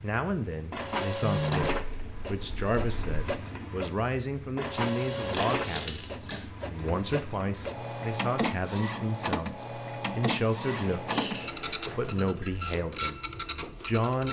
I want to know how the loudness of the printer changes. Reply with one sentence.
The volume of the printer stays about the same.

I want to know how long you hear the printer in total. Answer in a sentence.
You can hear the printer for 14 seconds altogether.